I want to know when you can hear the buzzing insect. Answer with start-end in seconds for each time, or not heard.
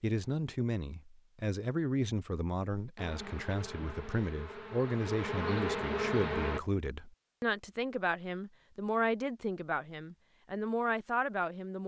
3.0-6.6.